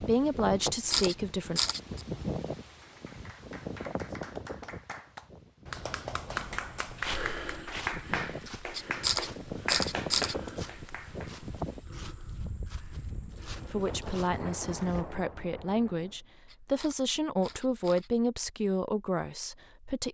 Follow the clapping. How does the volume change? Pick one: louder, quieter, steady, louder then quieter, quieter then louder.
louder.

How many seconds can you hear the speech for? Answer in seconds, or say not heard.
8 s.